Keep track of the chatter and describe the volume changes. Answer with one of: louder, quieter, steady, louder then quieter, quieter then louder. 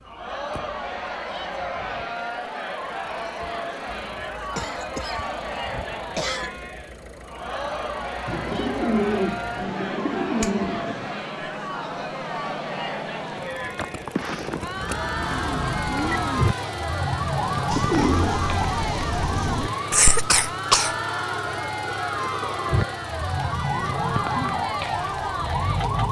steady.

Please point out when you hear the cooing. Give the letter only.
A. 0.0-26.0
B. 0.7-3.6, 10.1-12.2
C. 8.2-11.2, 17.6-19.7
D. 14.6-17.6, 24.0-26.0
C.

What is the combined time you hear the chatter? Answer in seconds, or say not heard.
26 s.